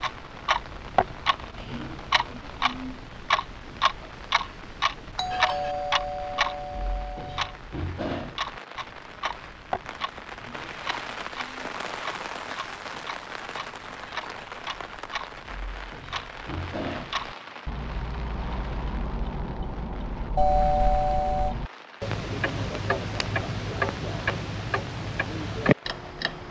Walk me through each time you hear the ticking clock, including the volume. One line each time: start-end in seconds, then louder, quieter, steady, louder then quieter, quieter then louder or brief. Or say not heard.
0.0-26.4 quieter then louder.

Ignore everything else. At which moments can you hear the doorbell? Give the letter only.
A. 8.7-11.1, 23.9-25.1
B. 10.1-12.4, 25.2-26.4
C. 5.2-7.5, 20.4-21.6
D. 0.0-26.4
C.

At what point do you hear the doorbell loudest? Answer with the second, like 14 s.
21 s.